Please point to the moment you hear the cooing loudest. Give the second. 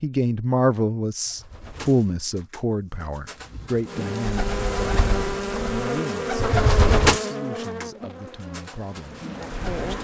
7 s.